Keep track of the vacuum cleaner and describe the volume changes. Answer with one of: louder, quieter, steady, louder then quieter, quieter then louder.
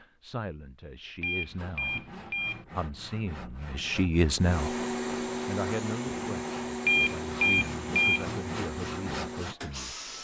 quieter.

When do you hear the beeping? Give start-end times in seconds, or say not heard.
1.2-2.6, 6.8-8.3.